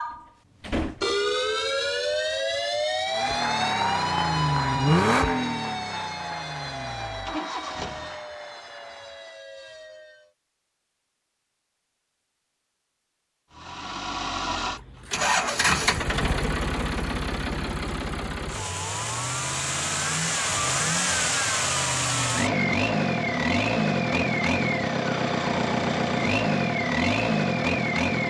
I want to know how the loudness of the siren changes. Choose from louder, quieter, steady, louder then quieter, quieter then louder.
quieter.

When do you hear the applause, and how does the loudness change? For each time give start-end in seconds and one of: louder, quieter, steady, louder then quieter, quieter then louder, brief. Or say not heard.
3.0-9.5 quieter.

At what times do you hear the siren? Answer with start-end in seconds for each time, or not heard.
0.0-10.3.